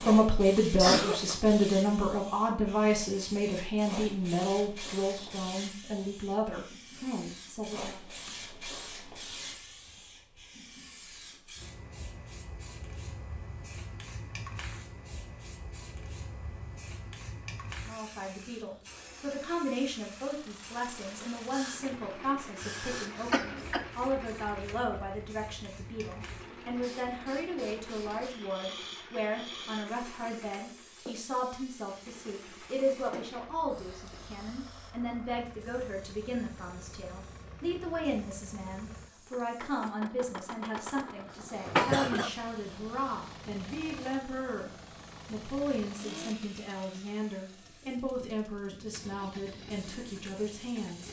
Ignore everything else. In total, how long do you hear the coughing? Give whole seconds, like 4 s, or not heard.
2 s.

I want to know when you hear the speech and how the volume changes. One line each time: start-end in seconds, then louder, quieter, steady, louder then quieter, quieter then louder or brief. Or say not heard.
0.0-8.0 quieter
17.9-51.0 steady.